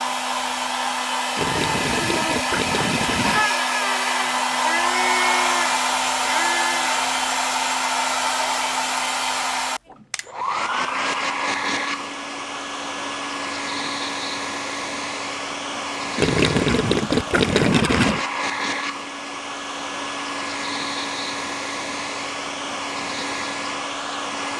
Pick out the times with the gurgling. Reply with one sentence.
The gurgling can be heard from 1.4 to 3.5 s and from 16.1 to 18.2 s.